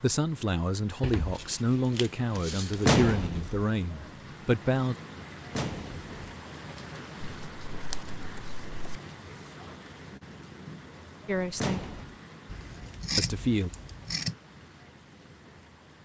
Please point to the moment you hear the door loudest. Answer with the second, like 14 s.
3 s.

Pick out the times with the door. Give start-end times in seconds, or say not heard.
2.9-3.6, 5.5-6.1, 11.6-12.2.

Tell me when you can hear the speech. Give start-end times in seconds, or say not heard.
0.0-5.0, 11.2-11.9, 13.2-13.7.